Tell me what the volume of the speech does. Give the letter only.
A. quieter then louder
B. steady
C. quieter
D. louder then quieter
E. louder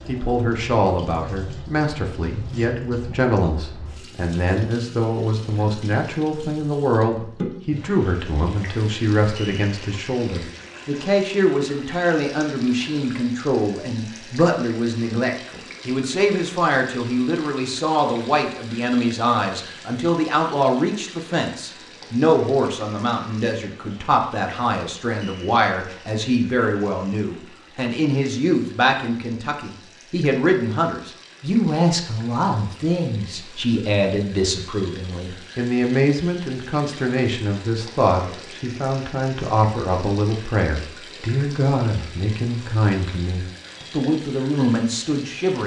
B.